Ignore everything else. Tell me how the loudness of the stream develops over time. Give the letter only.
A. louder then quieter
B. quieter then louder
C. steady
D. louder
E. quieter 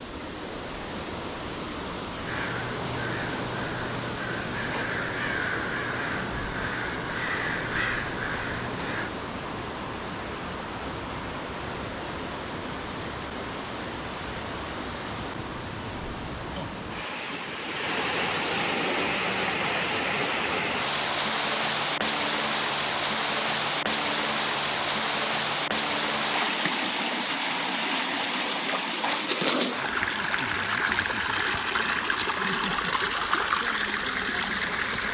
D.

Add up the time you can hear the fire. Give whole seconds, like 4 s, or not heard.
not heard.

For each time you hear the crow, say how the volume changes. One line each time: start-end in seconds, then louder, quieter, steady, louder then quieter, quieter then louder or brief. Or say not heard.
2.2-9.1 steady.